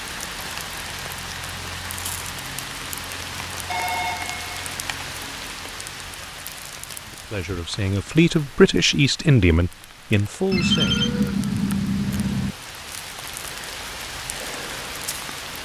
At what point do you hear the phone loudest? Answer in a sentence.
The loudest moment of the phone is at 11 seconds.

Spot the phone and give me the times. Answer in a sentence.
You can hear the phone from 3.6 to 4.5 s and from 10.5 to 12.6 s.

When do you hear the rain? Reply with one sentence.
The rain can be heard from 0.0 to 15.6 s.